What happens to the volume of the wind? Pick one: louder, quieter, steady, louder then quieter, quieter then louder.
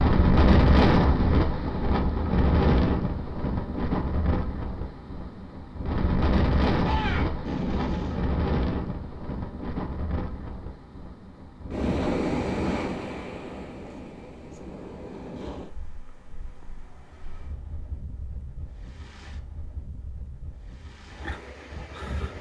quieter.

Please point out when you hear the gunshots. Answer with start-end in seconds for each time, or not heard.
6.8-8.3.